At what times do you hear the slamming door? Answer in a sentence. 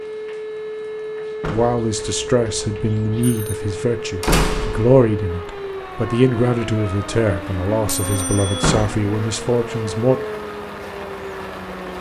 You can hear the slamming door from 1.4 to 1.9 s, from 4.2 to 5.0 s and from 8.6 to 9.1 s.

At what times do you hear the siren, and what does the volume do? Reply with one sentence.
You can hear the siren from 0.0 to 11.9 s, at a steady volume.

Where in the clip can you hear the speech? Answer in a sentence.
The speech can be heard from 1.4 to 10.2 s.